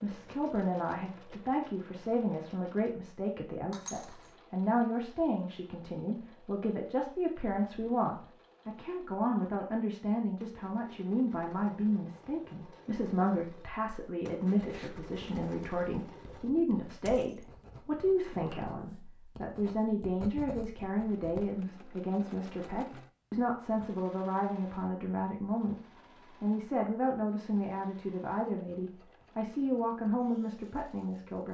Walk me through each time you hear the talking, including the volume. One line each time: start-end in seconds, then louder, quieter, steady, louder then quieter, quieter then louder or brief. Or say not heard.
0.0-31.5 steady.